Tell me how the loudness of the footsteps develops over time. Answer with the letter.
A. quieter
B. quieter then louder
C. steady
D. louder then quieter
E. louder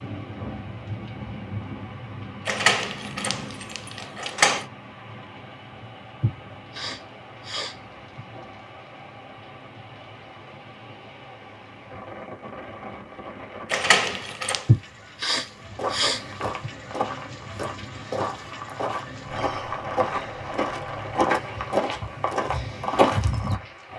E.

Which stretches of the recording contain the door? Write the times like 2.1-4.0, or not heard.
2.5-4.7, 13.7-14.7.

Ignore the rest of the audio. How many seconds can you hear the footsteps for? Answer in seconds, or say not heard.
8 s.